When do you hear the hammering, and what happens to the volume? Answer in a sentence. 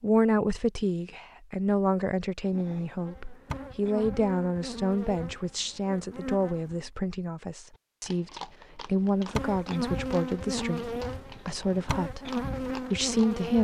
You can't hear the hammering here.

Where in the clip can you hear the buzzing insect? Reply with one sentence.
You can hear the buzzing insect from 2.5 to 6.8 s and from 9.3 to 13.5 s.